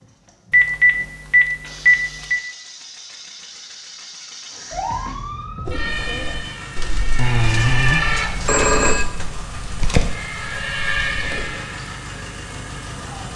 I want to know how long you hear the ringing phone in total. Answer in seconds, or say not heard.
4 s.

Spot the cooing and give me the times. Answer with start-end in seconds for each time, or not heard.
5.7-11.4.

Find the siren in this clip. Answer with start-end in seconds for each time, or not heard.
4.7-8.3, 10.1-13.3.